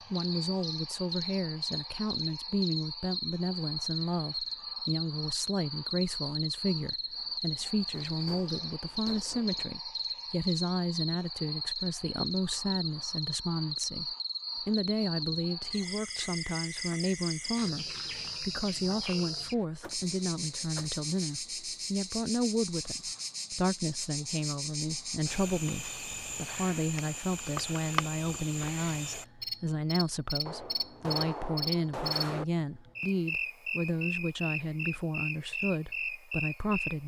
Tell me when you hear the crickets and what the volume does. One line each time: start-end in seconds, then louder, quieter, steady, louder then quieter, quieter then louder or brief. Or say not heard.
0.0-37.0 steady.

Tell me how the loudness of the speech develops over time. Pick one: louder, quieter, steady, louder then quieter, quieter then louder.
steady.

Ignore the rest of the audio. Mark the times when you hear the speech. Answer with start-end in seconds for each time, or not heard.
0.1-37.0.